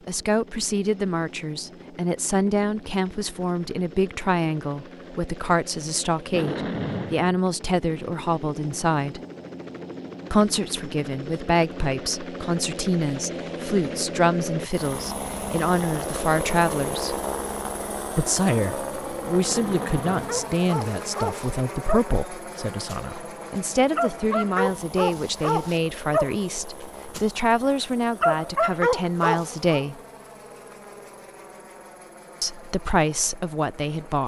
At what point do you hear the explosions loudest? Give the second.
7 s.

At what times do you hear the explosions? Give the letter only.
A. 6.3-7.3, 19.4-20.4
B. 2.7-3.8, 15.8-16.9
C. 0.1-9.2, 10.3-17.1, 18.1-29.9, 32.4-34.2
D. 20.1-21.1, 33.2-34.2
A.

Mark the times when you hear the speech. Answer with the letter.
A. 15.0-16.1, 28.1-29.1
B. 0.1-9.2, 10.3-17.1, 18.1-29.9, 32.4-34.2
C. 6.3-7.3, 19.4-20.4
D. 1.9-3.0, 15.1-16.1
B.